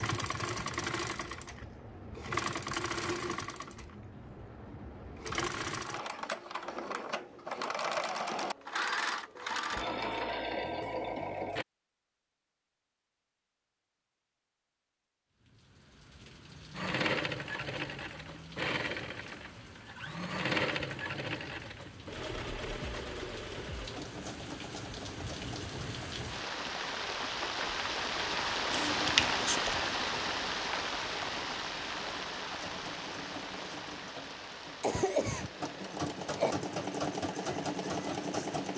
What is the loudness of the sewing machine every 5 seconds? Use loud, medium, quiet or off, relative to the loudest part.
loud, loud, loud, loud, loud, quiet, quiet, loud.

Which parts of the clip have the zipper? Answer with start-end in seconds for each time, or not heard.
not heard.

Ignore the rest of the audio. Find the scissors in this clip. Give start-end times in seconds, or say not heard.
28.7-29.9.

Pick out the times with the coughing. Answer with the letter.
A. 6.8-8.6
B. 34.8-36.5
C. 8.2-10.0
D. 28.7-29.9
B.